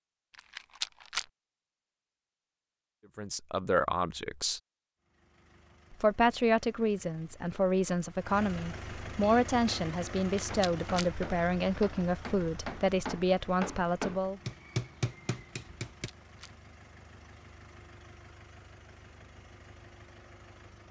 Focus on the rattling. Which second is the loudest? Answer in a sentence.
The loudest moment of the rattling is at 1 second.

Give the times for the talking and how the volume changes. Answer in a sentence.
You can hear the talking briefly from 3.1 to 4.6 s; and from 5.9 to 14.5 s, at a steady volume.